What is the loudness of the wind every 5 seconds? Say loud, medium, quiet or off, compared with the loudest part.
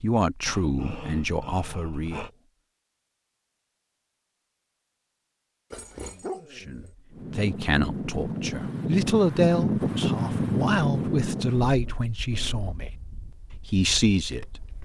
off, loud, loud.